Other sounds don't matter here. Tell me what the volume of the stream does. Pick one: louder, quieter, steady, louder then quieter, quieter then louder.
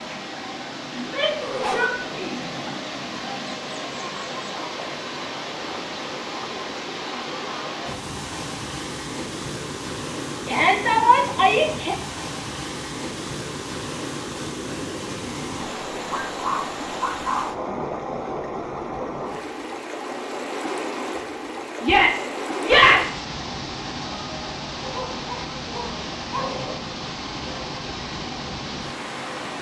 steady.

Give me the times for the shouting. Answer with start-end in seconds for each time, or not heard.
0.9-2.4, 10.4-11.9, 21.8-23.2.